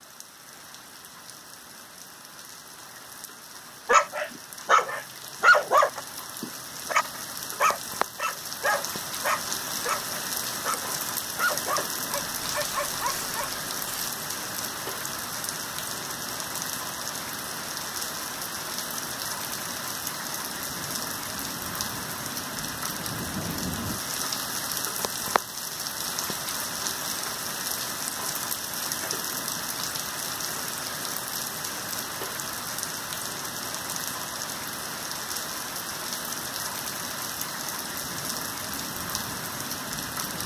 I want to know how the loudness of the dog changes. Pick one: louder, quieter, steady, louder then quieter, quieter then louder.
quieter.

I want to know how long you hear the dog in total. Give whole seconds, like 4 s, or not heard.
10 s.